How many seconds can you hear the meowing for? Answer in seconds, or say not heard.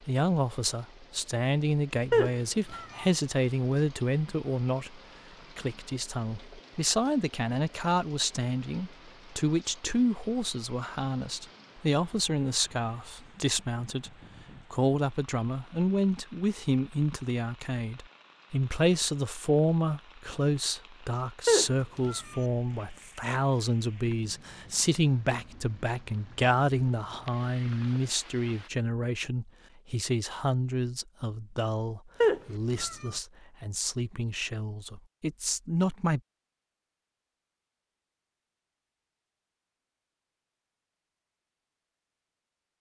3 s.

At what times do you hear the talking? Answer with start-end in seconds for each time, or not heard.
0.1-14.1, 14.7-36.2.